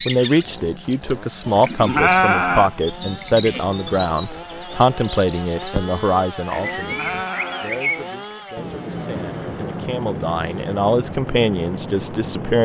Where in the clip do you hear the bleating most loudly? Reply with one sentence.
The loudest moment of the bleating is at 2 seconds.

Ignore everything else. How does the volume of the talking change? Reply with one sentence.
The volume of the talking goes down, then up.